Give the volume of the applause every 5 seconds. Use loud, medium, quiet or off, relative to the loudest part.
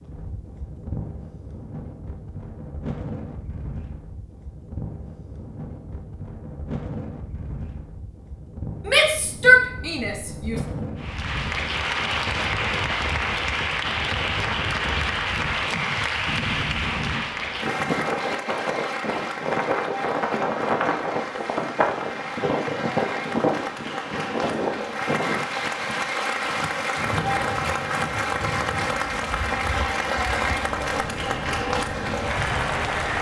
off, off, loud, loud, medium, loud, loud.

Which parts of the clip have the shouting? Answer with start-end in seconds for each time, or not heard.
8.8-10.6.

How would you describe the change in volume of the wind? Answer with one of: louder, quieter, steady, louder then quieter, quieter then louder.
louder then quieter.